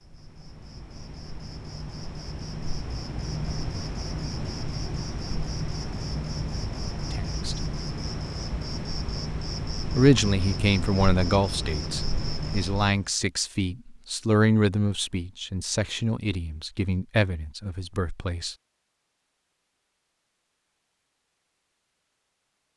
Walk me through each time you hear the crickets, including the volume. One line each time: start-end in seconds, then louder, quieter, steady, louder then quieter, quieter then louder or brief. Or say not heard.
0.1-13.1 louder.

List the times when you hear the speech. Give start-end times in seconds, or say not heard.
7.1-7.6, 9.9-18.6.